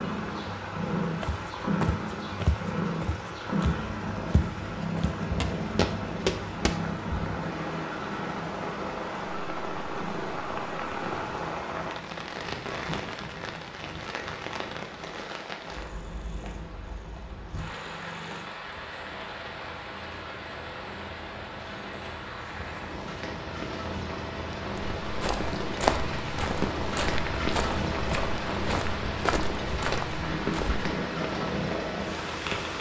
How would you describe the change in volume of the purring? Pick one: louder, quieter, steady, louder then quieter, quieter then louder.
quieter then louder.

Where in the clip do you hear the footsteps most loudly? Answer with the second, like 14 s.
26 s.